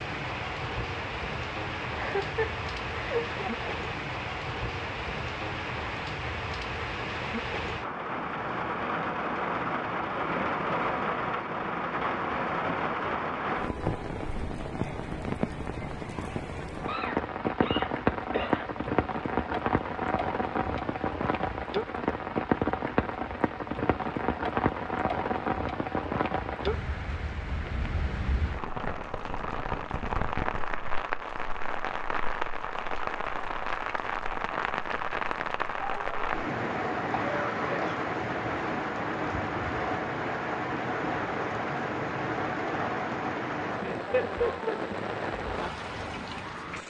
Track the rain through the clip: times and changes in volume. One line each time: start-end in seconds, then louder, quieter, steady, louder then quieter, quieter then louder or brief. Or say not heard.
0.0-46.8 steady.